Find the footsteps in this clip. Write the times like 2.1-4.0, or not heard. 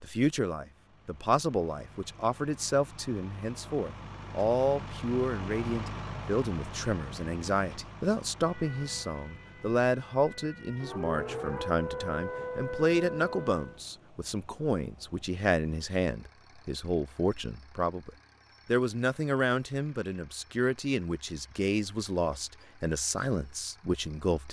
not heard.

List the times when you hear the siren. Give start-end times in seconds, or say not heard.
8.4-13.8.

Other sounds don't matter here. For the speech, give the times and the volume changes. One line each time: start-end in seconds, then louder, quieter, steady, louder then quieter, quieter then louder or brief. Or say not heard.
0.0-24.4 steady.